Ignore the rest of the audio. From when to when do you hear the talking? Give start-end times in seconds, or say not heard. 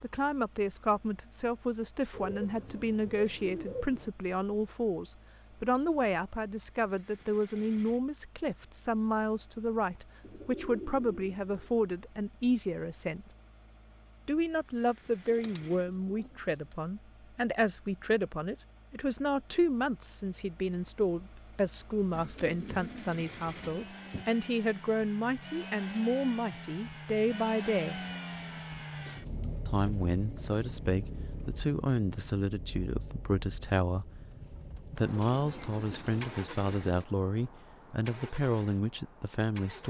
0.0-13.2, 14.2-28.0, 29.6-34.2, 34.9-39.8.